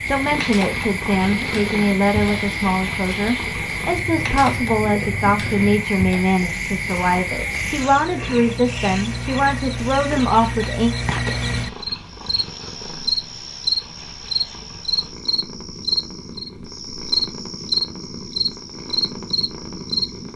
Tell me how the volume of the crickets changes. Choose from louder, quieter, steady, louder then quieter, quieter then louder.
steady.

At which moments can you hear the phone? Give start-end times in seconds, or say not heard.
not heard.